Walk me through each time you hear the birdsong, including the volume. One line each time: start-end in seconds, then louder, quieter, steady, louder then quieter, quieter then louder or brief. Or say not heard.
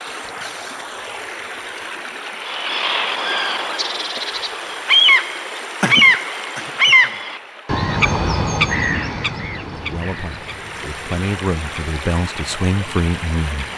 2.4-13.7 louder then quieter.